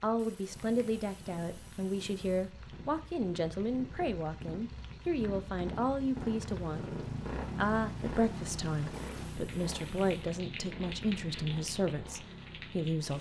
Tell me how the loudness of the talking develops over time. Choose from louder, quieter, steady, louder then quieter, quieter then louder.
steady.